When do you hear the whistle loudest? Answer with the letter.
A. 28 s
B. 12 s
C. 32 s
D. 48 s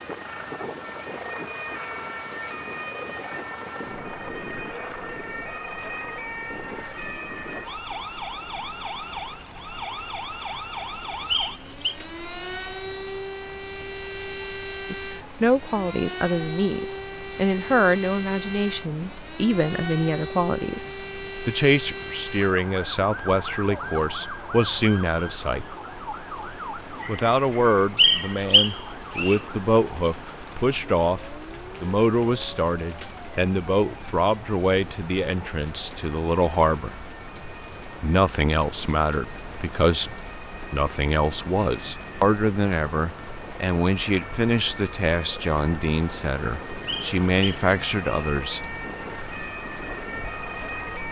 A.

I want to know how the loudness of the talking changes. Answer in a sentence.
The volume of the talking stays about the same.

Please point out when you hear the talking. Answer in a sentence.
You can hear the talking from 14.9 to 25.6 s, from 27.1 to 37.0 s and from 38.0 to 48.6 s.